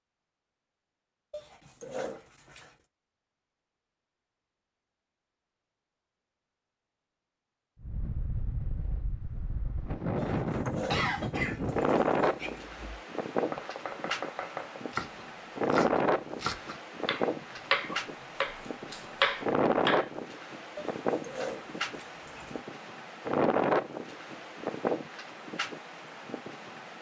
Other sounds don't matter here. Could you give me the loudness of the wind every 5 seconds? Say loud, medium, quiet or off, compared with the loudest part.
off, medium, loud, loud, loud, medium.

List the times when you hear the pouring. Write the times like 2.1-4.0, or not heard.
not heard.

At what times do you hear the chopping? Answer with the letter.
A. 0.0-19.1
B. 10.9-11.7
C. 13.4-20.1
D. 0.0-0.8
C.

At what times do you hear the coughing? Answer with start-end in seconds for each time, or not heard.
10.9-11.7.